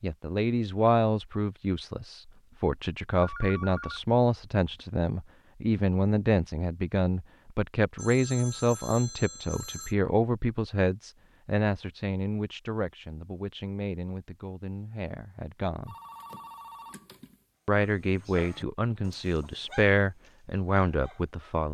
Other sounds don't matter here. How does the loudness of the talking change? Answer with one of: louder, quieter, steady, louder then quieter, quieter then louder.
quieter then louder.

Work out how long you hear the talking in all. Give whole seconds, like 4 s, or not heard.
20 s.